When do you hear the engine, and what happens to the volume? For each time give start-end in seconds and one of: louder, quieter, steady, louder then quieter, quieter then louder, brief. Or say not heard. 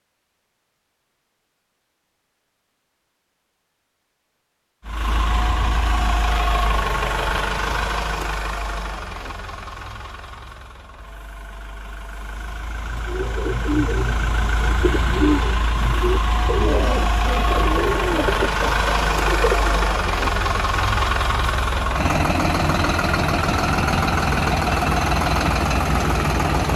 4.8-26.7 quieter then louder.